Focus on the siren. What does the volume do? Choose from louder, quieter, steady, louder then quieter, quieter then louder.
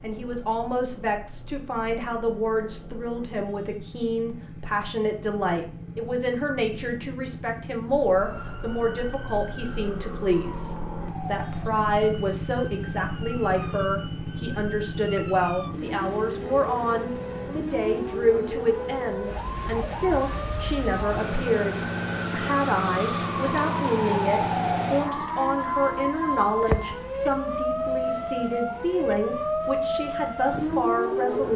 louder.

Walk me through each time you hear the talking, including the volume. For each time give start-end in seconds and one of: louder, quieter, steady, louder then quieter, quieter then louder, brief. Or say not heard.
0.0-31.5 steady.